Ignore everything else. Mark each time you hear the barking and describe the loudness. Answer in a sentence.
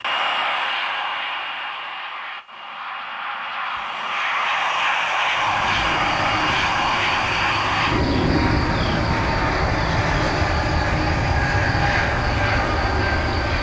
The barking can't be heard in this clip.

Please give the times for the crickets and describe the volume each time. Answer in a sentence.
The crickets can be heard from 5.2 to 13.5 s, at a steady volume.